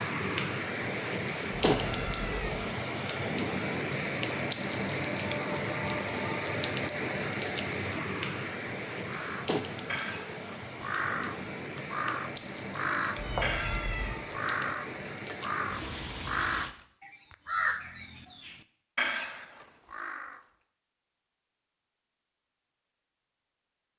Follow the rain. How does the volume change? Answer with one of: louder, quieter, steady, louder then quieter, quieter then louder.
quieter.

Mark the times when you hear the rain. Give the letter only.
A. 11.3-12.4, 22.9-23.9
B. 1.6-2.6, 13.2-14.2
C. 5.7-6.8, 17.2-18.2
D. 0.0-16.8
D.